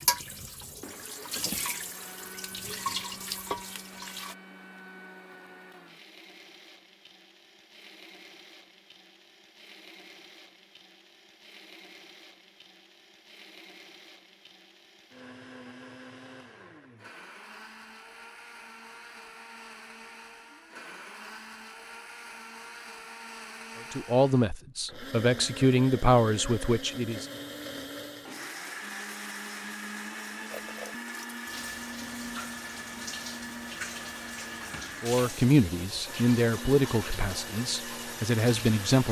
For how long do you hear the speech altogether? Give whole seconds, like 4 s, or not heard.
7 s.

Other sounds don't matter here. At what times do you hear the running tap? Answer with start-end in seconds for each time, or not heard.
0.0-4.3, 30.5-39.0.